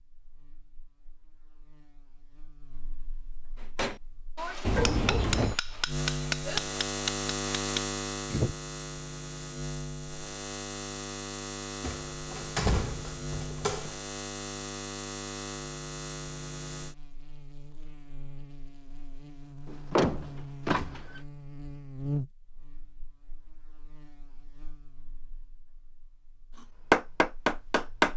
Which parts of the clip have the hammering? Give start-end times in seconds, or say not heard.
3.5-8.6, 26.9-28.1.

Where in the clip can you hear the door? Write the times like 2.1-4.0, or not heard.
4.6-5.5, 11.8-13.9, 19.6-21.2.